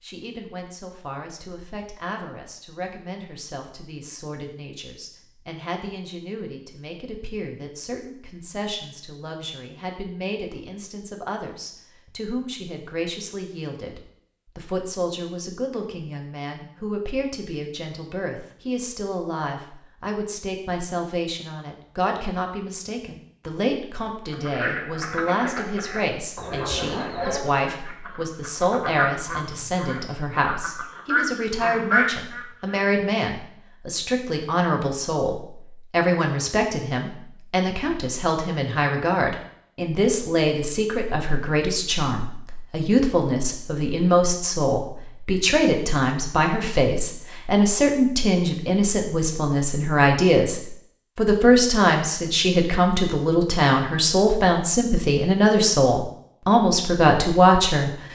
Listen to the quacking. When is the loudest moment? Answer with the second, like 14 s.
32 s.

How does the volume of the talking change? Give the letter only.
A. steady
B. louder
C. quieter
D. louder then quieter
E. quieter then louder
B.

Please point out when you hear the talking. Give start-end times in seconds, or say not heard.
0.0-57.9.